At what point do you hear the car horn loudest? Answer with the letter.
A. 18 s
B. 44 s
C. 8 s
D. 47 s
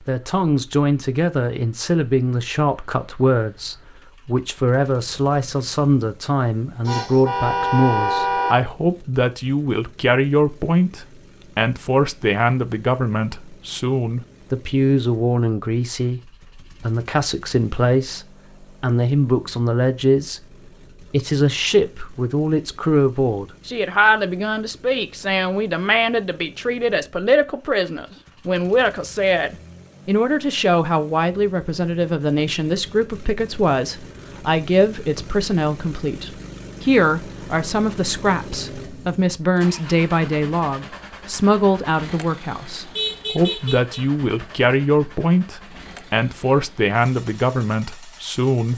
C.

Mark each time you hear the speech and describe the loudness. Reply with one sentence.
The speech can be heard from 0.1 to 48.7 s, at a steady volume.